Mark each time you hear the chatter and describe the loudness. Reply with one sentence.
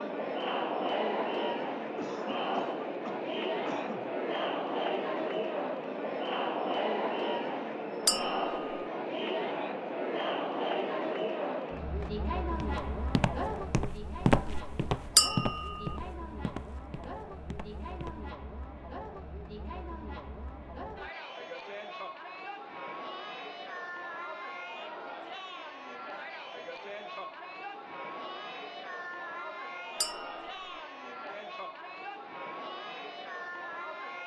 You can hear the chatter from 0.0 to 34.2 s, getting quieter.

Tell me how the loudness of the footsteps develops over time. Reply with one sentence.
The loudness of the footsteps goes up, then down.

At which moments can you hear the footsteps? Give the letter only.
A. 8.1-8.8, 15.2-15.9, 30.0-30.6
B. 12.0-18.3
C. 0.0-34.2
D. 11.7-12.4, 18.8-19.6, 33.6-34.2
B.